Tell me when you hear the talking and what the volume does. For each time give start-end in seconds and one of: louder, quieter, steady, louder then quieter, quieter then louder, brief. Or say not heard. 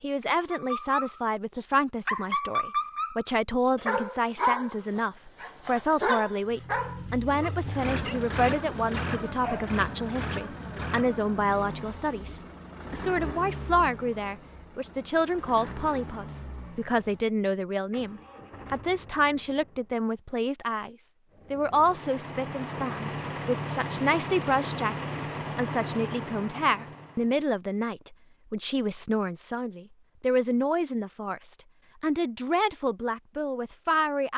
0.0-34.3 steady.